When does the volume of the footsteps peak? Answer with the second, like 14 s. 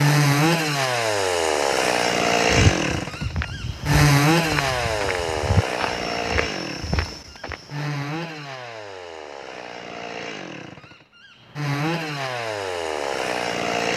3 s.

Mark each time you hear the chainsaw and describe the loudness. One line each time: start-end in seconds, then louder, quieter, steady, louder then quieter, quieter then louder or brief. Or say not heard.
0.0-13.9 quieter then louder.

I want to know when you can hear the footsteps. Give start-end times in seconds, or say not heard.
2.5-7.7.